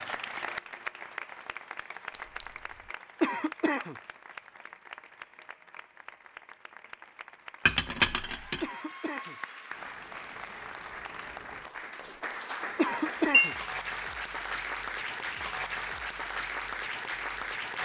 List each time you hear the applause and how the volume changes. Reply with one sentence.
You can hear the applause from 0.0 to 17.7 s, getting quieter then louder.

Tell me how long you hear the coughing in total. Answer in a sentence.
You can hear the coughing for 2 seconds altogether.